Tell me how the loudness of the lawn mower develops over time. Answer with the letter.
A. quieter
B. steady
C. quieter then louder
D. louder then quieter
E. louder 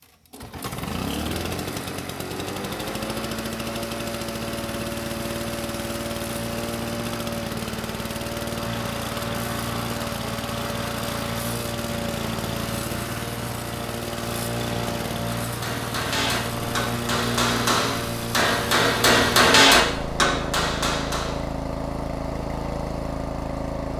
B.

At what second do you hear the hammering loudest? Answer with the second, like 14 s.
20 s.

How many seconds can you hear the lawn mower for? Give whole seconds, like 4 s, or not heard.
24 s.